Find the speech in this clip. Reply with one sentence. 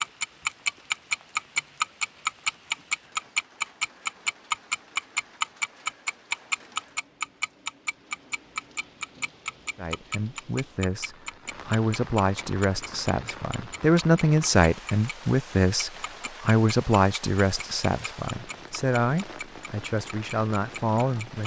The speech can be heard from 9.8 to 21.4 s.